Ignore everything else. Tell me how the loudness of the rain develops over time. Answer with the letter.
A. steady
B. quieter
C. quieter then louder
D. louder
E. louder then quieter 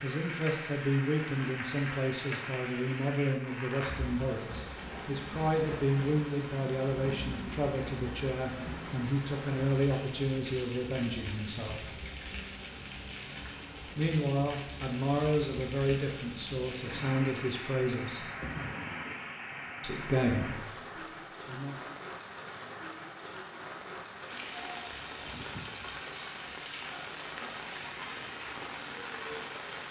A.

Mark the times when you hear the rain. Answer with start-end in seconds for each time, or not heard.
0.0-29.8.